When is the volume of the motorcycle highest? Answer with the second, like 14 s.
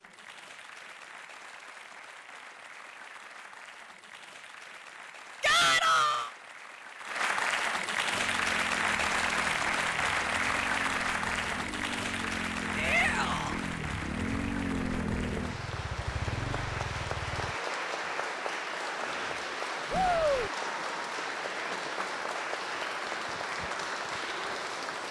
15 s.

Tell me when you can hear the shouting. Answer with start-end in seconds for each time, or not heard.
5.4-6.3, 12.8-13.6, 19.9-20.5.